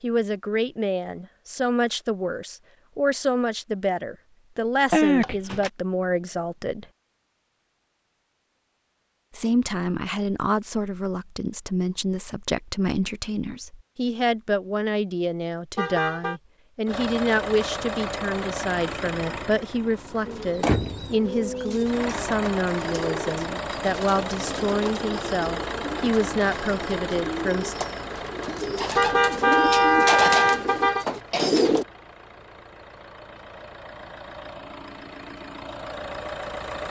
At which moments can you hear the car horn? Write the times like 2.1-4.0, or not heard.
15.8-16.4, 28.9-31.1.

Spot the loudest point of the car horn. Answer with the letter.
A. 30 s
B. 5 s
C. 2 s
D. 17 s
A.